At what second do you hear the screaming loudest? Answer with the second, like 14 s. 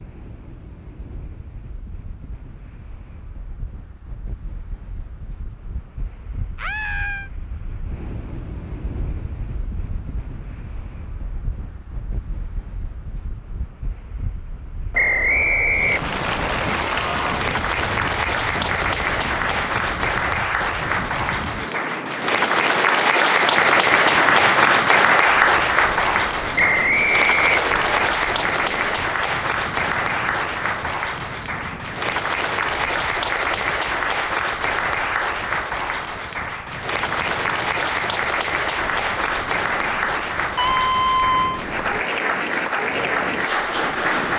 41 s.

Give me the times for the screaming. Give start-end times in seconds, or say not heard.
6.5-7.3, 40.5-41.6.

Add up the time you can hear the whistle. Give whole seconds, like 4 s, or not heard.
3 s.